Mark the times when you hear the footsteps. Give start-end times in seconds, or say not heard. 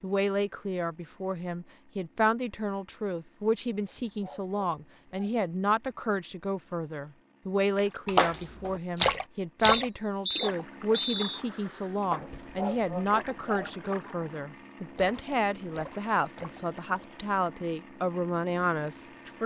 not heard.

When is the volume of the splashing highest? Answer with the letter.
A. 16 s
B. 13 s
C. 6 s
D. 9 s
D.